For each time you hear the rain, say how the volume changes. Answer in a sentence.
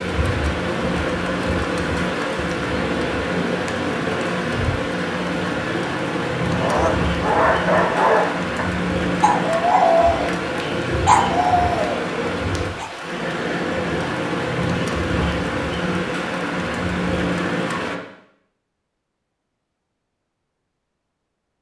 You can hear the rain from 0.0 to 18.0 s, at a steady volume.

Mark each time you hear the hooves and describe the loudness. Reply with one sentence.
You can't hear the hooves here.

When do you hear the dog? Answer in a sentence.
You can hear the dog from 6.5 to 12.9 s.